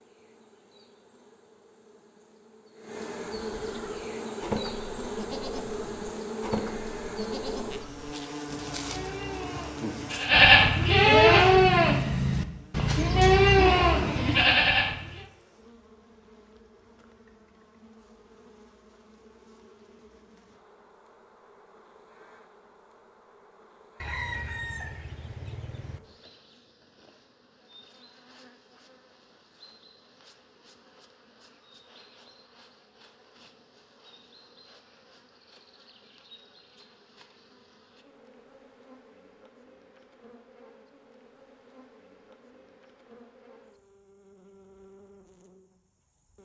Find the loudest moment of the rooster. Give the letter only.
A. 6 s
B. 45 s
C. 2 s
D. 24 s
D.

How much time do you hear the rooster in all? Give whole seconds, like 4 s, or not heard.
2 s.